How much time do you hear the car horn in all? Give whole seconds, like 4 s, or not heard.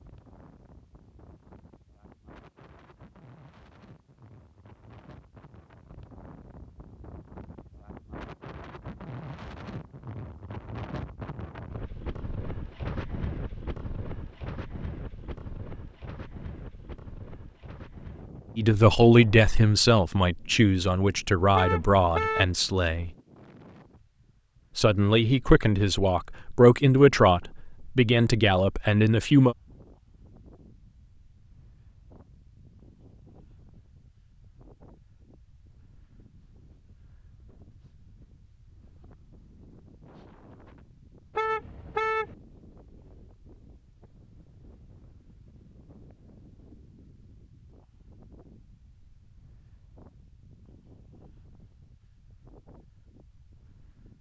2 s.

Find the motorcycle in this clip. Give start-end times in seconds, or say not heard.
not heard.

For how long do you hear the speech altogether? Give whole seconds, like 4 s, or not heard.
9 s.